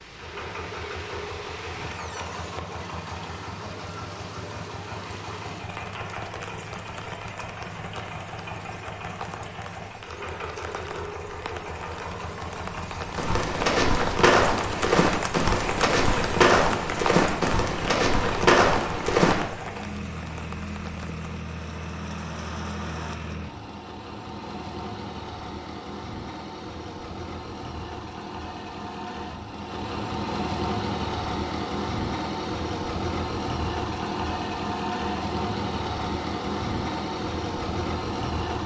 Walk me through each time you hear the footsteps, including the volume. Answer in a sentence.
You can hear the footsteps from 13.2 to 19.4 s, at a steady volume.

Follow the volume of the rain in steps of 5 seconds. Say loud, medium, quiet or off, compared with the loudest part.
medium, medium, loud, loud, medium, off, off, off.